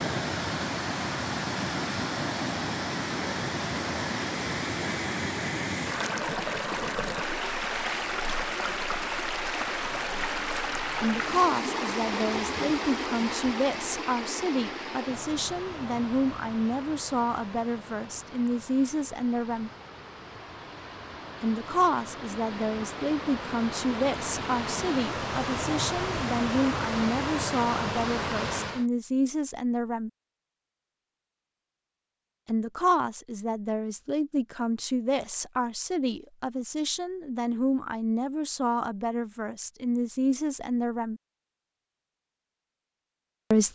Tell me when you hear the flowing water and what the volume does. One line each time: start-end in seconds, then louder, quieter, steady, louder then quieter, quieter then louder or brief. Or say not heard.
0.0-28.9 quieter then louder.